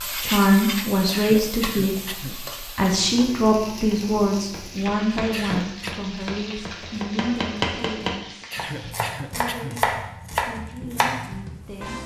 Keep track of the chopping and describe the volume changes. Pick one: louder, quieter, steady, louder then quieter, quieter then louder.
louder.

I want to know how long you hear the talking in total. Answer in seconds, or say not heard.
11 s.